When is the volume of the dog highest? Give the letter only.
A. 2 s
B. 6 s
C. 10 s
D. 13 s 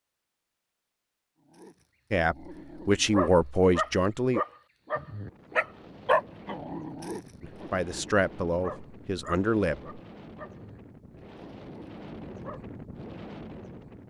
B.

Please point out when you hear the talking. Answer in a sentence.
The talking can be heard from 2.1 to 4.5 s and from 7.4 to 9.9 s.